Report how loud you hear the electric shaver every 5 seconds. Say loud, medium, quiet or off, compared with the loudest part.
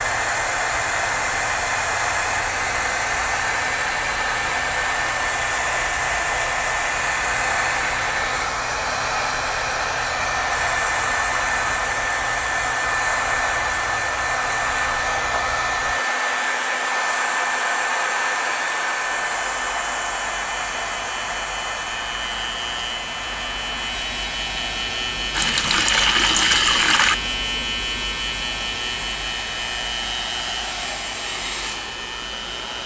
quiet, quiet, quiet, quiet, medium, loud, medium.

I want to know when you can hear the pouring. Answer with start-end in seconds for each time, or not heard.
25.3-27.1.